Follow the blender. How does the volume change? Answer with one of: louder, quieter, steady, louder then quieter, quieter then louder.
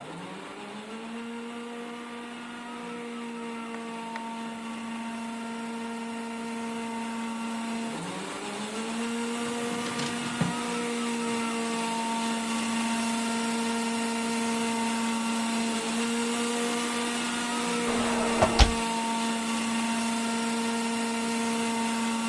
louder.